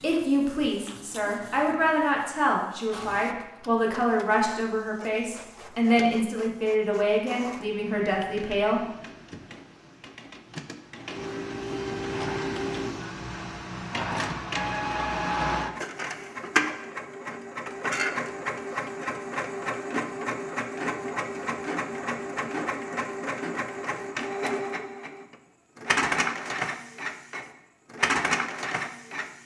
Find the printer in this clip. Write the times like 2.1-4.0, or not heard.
0.0-29.4.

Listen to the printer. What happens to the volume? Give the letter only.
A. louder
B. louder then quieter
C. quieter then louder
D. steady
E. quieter
A.